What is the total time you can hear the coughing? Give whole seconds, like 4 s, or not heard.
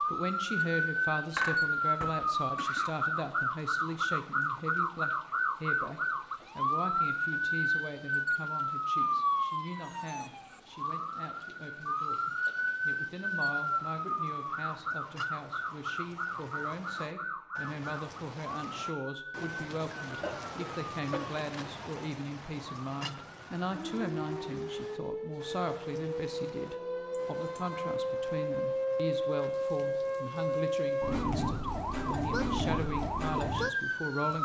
3 s.